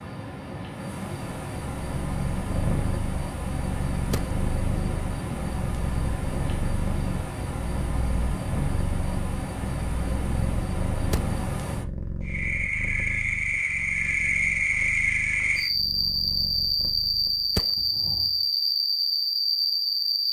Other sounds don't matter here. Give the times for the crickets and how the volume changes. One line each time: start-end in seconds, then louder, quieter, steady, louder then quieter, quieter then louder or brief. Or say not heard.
0.0-20.2 louder.